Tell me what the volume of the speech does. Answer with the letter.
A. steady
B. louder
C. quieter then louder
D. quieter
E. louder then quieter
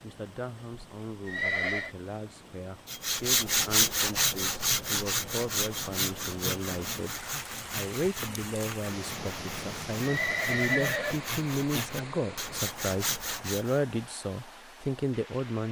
B.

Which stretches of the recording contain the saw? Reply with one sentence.
The saw can be heard from 2.9 to 13.8 s.